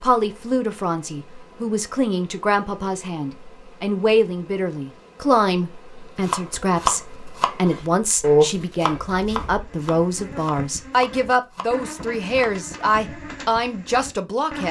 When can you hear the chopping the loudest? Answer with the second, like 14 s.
8 s.